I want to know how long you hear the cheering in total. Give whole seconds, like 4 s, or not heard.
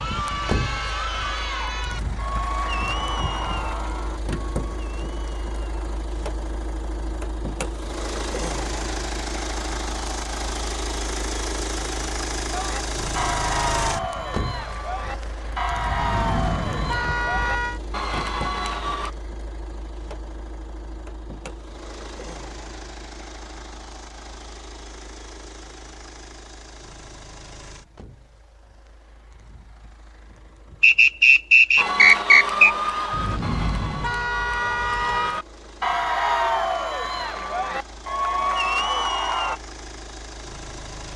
20 s.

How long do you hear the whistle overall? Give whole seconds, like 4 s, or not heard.
2 s.